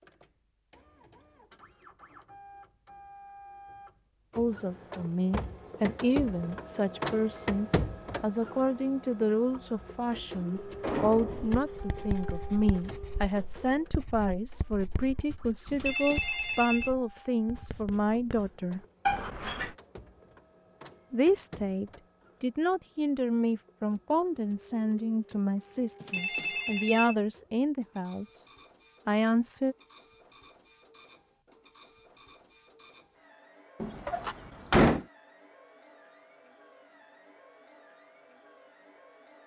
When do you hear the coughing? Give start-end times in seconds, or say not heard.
not heard.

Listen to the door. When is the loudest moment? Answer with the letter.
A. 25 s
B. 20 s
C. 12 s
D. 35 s
D.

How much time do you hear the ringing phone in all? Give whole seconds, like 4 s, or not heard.
2 s.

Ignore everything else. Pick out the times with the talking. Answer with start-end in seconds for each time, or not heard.
4.3-18.8, 21.1-28.4, 29.1-29.8.